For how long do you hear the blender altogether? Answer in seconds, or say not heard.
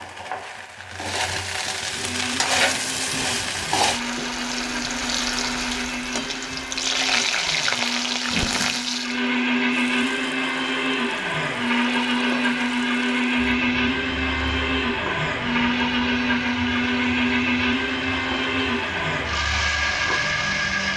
19 s.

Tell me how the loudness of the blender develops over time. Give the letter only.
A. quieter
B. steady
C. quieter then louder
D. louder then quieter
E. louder
E.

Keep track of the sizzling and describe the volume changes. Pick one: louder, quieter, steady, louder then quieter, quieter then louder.
quieter.